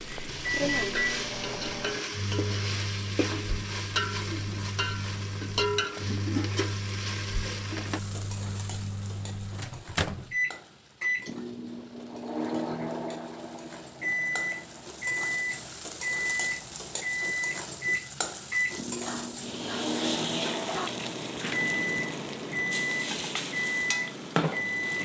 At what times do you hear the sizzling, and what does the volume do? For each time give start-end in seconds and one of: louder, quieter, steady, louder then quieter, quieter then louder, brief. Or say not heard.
0.0-25.0 quieter then louder.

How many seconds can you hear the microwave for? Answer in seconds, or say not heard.
25 s.